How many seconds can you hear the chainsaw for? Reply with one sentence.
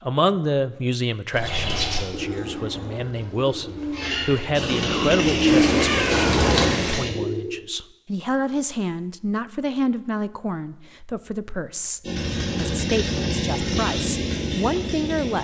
The chainsaw can be heard for 6 seconds in total.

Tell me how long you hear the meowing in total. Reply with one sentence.
You can hear the meowing for 2 seconds altogether.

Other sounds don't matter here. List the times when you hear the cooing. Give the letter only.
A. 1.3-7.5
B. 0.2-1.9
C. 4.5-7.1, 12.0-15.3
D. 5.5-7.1
A.